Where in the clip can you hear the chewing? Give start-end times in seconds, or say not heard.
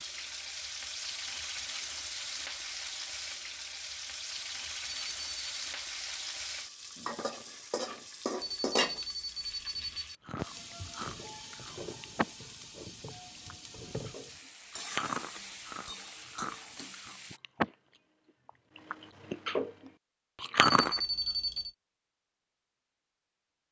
10.2-12.3, 13.1-17.8, 18.4-21.0.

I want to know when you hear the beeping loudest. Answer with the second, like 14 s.
21 s.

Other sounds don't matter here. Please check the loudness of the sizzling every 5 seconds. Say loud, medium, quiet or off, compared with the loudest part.
loud, loud, medium, medium, off.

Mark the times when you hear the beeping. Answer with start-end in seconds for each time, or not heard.
4.8-5.6, 8.4-10.2, 20.6-21.7.